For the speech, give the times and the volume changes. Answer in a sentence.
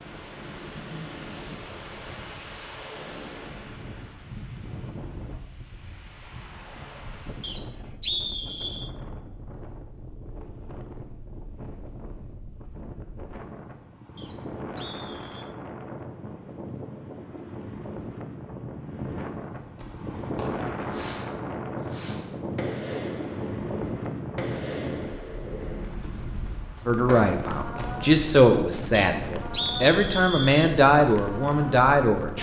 You can hear the speech from 26.9 to 32.3 s, at a steady volume.